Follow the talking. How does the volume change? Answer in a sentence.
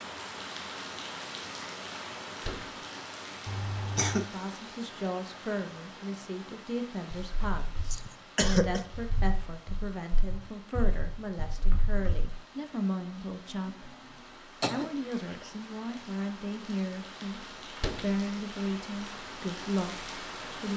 The loudness of the talking stays about the same.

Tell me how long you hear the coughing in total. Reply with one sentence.
You can hear the coughing for 3 seconds altogether.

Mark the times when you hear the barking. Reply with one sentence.
You can't hear the barking here.